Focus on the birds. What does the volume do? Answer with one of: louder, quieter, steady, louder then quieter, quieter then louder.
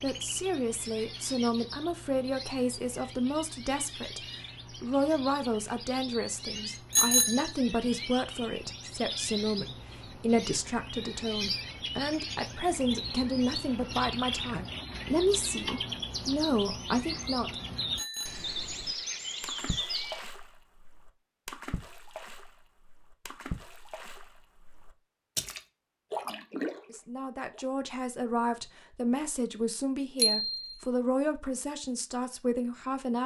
louder.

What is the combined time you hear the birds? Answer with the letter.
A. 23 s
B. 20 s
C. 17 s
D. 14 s
B.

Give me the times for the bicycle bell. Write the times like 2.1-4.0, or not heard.
6.9-7.5, 17.9-18.5, 30.1-30.8.